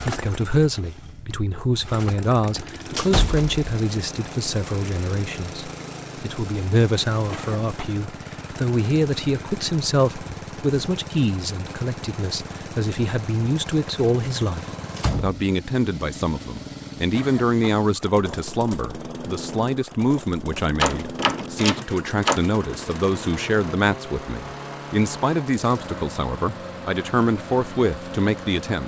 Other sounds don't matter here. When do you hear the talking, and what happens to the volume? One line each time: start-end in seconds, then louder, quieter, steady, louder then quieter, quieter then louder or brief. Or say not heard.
0.0-28.8 steady.